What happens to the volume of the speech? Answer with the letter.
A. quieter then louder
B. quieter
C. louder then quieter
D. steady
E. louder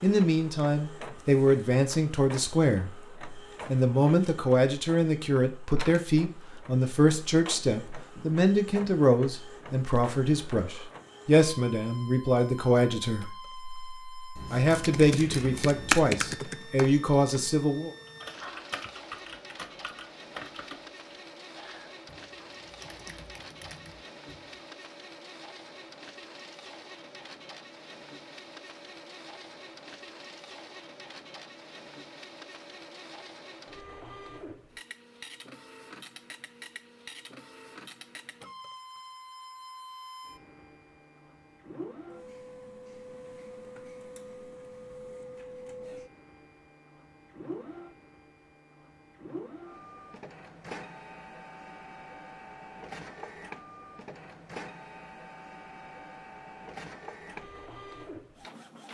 D.